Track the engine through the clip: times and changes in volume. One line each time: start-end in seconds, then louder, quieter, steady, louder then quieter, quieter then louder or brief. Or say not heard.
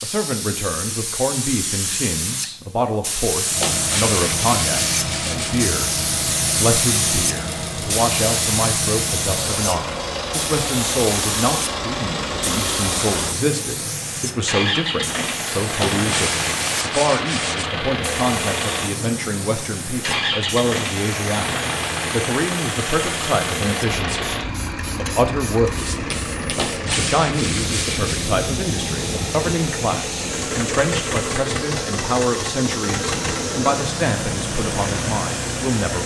3.4-36.0 steady.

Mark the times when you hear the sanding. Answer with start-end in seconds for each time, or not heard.
3.6-5.7, 15.8-17.6, 26.6-28.4.